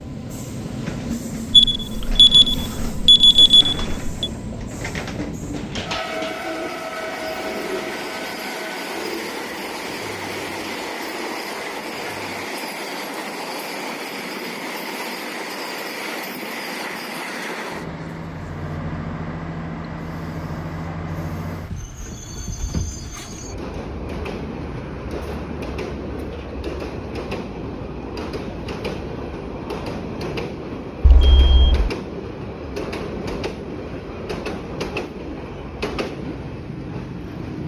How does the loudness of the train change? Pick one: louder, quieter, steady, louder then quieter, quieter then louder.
steady.